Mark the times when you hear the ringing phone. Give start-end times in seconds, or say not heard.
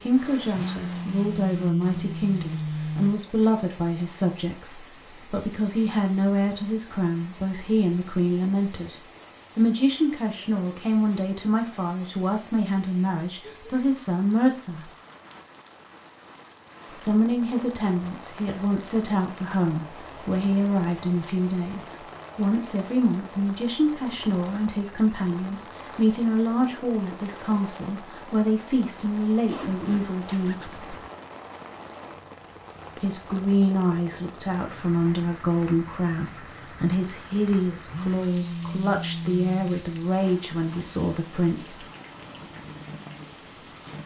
0.5-3.2, 37.9-39.6.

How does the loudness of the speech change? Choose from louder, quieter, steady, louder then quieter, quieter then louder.
steady.